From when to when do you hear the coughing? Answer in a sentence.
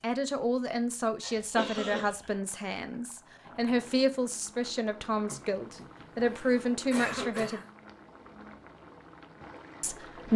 The coughing can be heard from 1.2 to 2.0 s and from 5.2 to 7.7 s.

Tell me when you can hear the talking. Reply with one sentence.
You can hear the talking from 0.0 to 7.6 s and from 9.8 to 10.3 s.